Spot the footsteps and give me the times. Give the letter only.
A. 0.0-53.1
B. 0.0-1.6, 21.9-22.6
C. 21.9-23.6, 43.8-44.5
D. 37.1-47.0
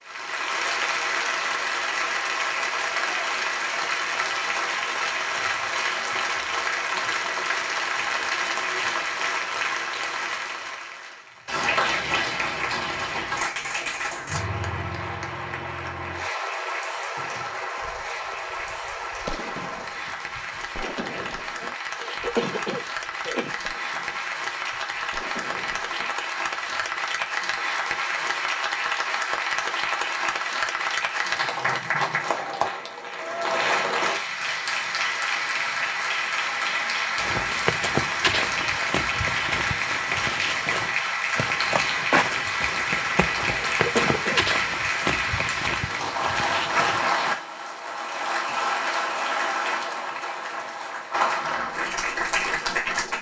D.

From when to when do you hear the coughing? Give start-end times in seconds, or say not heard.
21.9-23.6, 43.8-44.5.